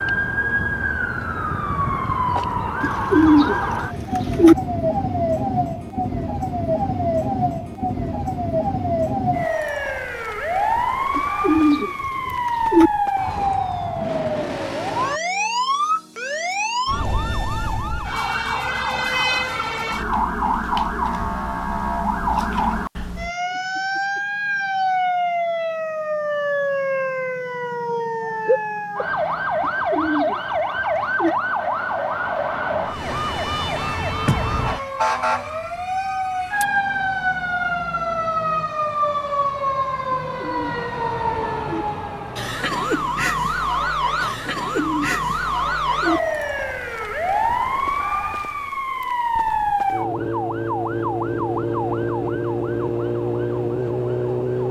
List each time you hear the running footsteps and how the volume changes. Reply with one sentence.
You can't hear the running footsteps here.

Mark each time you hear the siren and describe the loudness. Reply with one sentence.
You can hear the siren from 0.0 to 54.6 s, at a steady volume.